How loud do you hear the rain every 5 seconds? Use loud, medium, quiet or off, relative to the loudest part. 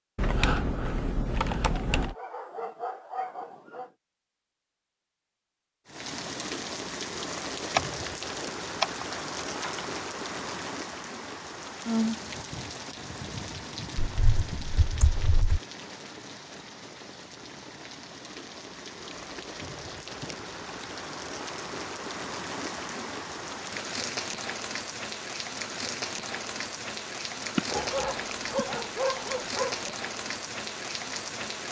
off, loud, loud, medium, loud, loud, loud.